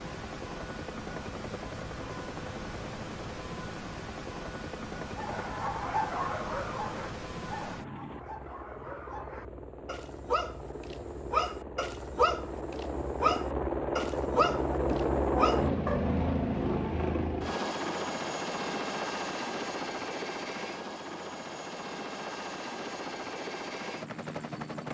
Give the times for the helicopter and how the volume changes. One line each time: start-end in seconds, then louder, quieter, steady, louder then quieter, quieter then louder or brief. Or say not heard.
0.0-24.8 louder then quieter.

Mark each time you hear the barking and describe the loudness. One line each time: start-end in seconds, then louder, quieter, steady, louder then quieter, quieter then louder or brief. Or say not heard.
5.2-16.1 quieter then louder.